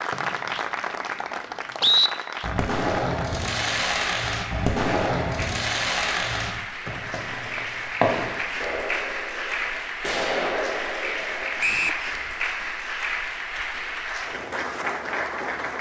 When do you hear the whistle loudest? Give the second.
2 s.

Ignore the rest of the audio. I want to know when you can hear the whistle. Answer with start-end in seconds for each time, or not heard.
0.1-2.1, 6.8-7.8, 11.6-12.0.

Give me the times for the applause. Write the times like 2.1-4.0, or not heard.
0.0-15.7.